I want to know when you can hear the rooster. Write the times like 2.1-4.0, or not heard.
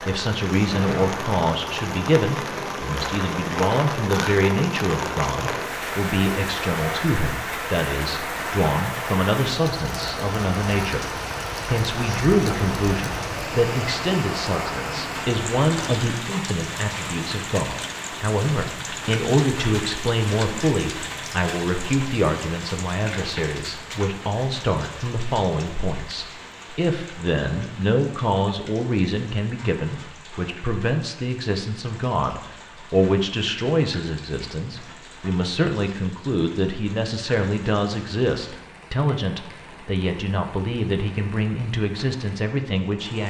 not heard.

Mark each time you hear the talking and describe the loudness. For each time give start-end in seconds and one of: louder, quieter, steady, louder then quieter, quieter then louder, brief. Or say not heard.
0.0-43.2 steady.